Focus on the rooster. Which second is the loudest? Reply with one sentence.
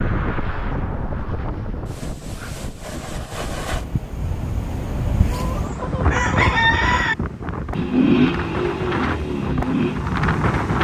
The volume of the rooster peaks at 7 seconds.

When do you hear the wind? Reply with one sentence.
The wind can be heard from 0.0 to 10.7 s.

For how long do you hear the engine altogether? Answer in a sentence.
The engine can be heard for 3 seconds in total.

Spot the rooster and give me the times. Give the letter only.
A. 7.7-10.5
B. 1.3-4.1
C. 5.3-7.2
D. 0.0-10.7
C.